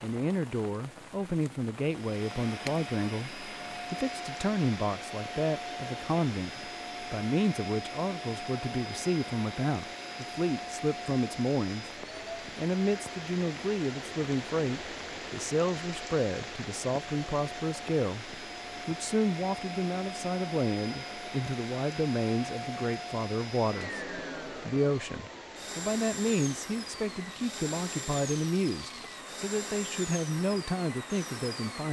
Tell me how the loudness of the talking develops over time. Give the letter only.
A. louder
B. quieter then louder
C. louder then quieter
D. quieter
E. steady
E.